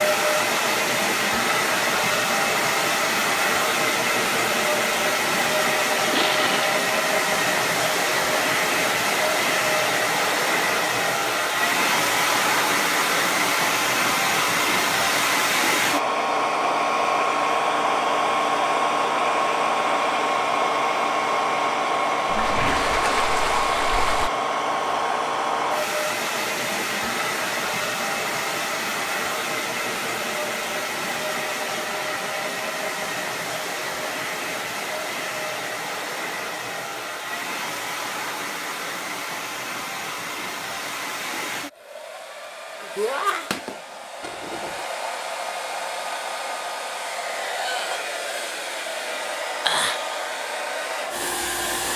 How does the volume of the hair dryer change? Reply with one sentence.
The volume of the hair dryer goes down.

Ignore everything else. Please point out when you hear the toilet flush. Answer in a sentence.
You can hear the toilet flush from 6.1 to 6.8 s, from 22.2 to 24.3 s and from 44.2 to 44.9 s.